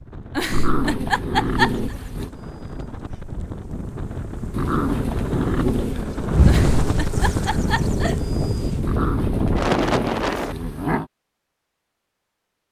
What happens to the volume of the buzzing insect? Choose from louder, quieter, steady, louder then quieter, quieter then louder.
louder then quieter.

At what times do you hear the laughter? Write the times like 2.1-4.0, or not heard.
0.3-1.9, 6.5-8.3.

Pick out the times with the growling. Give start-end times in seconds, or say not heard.
0.5-2.3, 4.5-6.0, 8.8-11.1.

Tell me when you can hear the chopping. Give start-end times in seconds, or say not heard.
not heard.